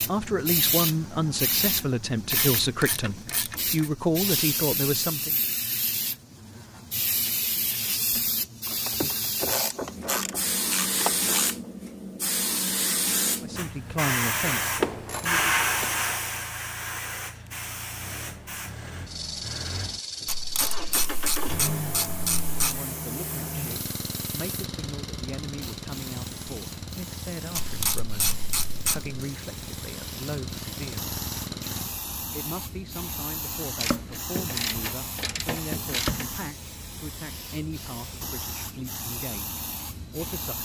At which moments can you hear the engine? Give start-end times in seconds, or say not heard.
13.4-31.9.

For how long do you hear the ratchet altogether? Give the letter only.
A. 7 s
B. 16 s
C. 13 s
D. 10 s
C.